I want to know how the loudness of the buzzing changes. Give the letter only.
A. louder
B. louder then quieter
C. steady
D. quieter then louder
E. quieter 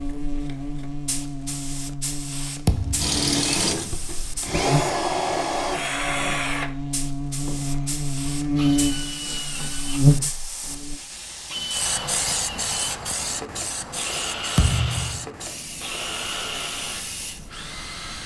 A.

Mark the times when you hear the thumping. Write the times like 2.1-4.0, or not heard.
2.6-3.1, 14.6-15.2.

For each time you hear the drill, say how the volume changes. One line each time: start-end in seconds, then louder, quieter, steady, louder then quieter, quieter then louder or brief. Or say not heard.
3.0-18.2 quieter.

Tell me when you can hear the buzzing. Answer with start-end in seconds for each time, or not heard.
0.0-11.0.